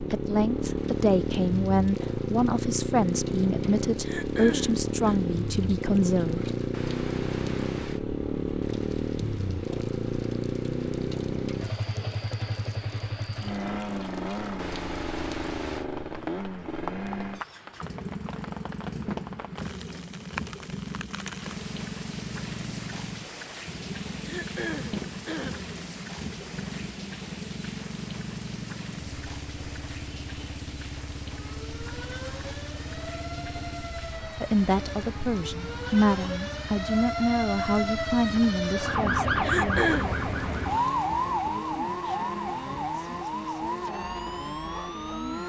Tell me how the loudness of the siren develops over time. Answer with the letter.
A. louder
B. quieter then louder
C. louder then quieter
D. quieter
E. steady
C.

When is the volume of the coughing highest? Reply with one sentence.
The loudest moment of the coughing is at 40 seconds.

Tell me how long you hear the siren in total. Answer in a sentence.
You can hear the siren for 14 seconds altogether.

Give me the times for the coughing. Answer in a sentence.
You can hear the coughing from 4.0 to 5.2 s, from 24.2 to 25.6 s and from 39.4 to 40.0 s.